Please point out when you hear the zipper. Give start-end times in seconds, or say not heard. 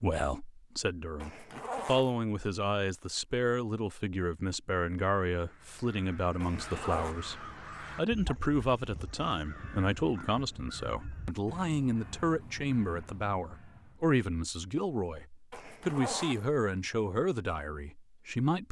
1.2-2.1, 6.4-7.2, 15.5-16.5.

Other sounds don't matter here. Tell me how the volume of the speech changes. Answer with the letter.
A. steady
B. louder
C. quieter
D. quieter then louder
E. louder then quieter
A.